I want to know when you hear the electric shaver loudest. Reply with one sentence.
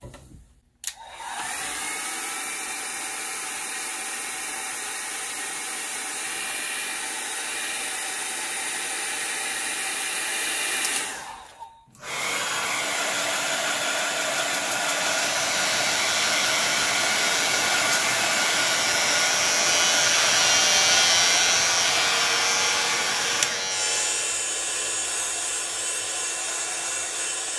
The volume of the electric shaver peaks at 21 seconds.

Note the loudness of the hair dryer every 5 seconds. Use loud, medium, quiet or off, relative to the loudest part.
medium, medium, loud, loud, loud, medium.